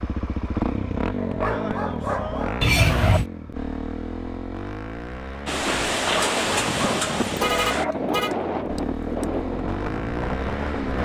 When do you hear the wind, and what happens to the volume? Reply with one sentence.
The wind can be heard from 5.5 to 10.9 s, getting quieter.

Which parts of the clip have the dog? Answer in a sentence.
The dog can be heard from 1.1 to 3.2 s and from 6.0 to 8.0 s.